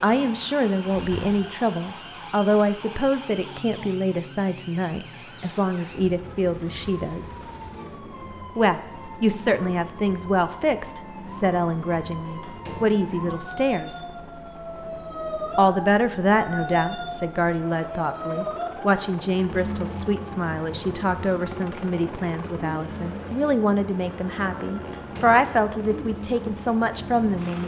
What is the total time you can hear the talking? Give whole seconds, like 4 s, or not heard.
25 s.